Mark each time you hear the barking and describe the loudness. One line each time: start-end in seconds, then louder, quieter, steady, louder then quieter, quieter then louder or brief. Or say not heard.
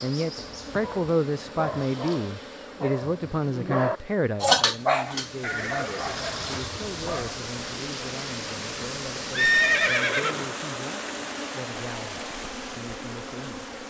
0.8-7.3 louder then quieter.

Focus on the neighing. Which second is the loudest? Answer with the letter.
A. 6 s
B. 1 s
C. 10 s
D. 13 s
C.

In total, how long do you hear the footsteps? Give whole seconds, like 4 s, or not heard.
not heard.